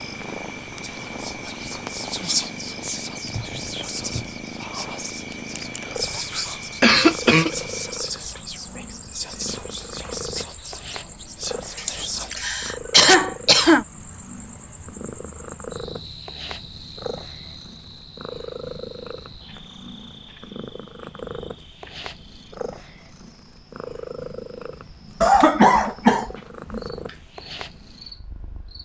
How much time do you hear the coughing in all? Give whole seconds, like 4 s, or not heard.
5 s.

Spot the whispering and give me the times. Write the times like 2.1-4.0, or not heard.
0.8-12.3.